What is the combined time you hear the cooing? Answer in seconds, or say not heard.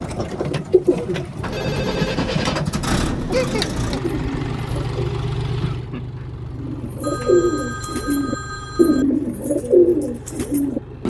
10 s.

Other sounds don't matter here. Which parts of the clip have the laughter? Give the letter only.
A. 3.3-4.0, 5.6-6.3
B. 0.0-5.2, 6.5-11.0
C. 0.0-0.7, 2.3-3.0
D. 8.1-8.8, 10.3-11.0
A.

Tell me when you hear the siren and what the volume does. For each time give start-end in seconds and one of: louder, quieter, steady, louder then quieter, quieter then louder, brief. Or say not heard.
not heard.